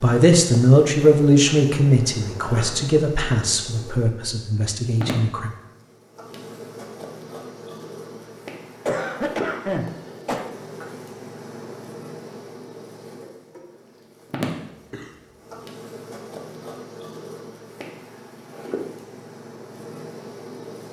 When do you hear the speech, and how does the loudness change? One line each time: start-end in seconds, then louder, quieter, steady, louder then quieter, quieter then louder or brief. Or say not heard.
0.0-5.5 quieter.